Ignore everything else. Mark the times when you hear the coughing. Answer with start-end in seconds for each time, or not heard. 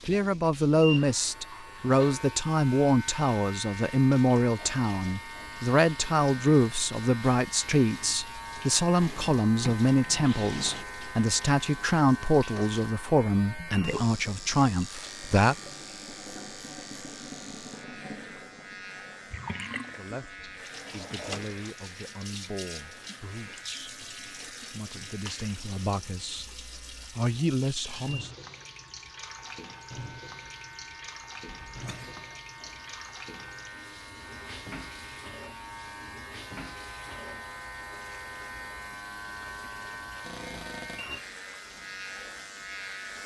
31.4-32.2.